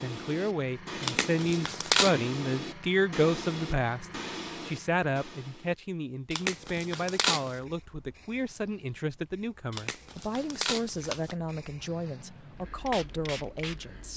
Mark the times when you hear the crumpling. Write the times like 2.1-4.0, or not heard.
1.0-2.1, 6.3-7.5, 9.7-11.3.